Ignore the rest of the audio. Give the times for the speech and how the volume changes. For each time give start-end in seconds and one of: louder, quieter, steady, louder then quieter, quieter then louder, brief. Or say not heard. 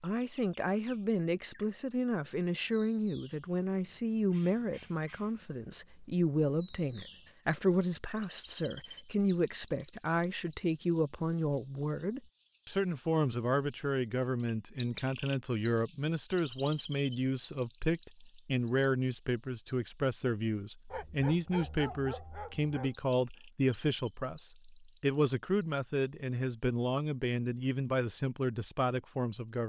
0.0-29.6 steady.